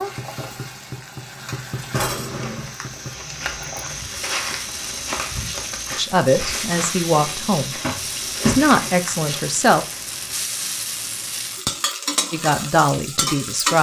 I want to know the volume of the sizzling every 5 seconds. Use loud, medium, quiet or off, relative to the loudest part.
medium, medium, loud.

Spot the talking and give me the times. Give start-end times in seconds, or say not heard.
6.0-7.8, 8.4-9.8, 12.3-13.7.